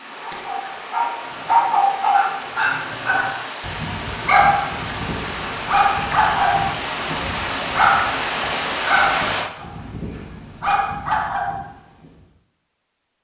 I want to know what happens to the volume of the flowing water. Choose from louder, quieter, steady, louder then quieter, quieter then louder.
louder.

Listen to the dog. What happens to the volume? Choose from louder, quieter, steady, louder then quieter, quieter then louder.
quieter.